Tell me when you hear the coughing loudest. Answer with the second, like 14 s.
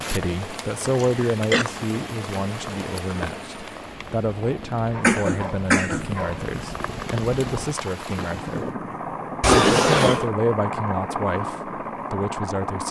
10 s.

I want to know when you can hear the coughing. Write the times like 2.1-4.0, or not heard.
0.9-1.7, 5.0-6.1, 9.4-10.2.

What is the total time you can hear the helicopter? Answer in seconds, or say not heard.
13 s.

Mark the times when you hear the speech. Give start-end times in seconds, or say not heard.
0.0-8.7, 9.5-12.8.